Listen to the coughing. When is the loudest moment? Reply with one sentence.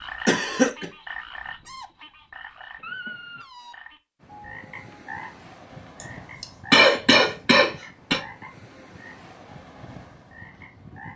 The loudest moment of the coughing is at 7 seconds.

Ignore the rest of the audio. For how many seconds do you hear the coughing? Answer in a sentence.
You can hear the coughing for 3 seconds altogether.